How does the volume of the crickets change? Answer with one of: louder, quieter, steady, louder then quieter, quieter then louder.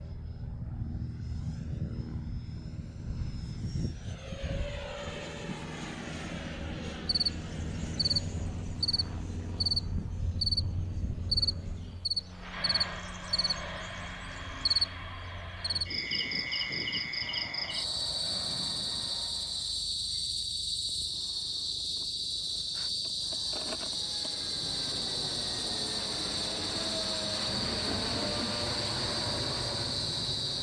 steady.